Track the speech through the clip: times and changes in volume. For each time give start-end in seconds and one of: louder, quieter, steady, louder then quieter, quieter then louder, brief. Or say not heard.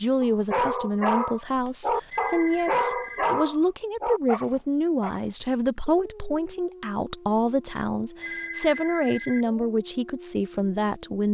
0.0-11.2 steady.